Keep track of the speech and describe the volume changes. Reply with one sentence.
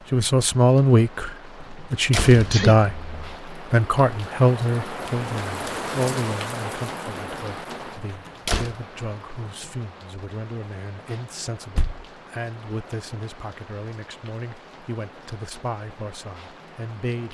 The loudness of the speech goes down.